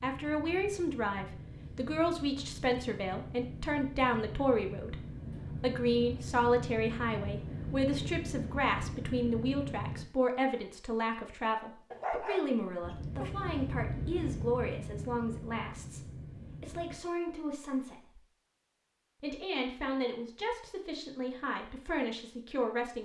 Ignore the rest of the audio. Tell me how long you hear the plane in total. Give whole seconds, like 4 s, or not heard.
14 s.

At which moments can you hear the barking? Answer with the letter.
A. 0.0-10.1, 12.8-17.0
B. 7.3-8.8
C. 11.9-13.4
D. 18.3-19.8
C.